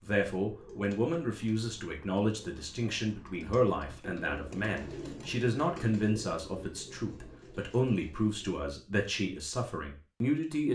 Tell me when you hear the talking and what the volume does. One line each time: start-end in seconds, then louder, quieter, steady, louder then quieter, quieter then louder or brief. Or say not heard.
0.0-10.6 steady.